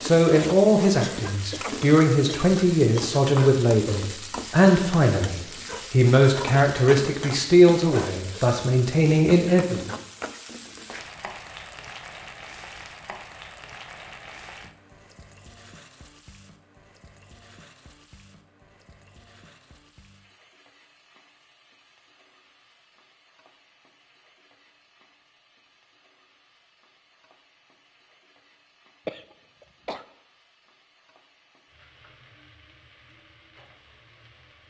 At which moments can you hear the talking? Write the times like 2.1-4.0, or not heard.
0.0-9.9.